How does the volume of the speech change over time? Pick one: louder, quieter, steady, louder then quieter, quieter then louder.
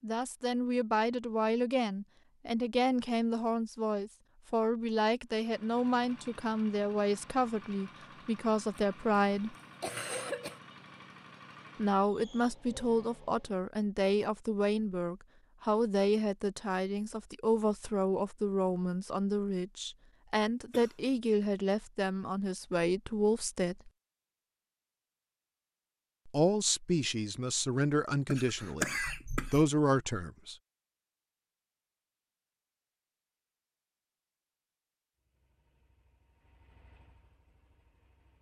steady.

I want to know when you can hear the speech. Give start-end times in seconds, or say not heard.
0.0-9.6, 11.8-23.9, 26.2-30.6.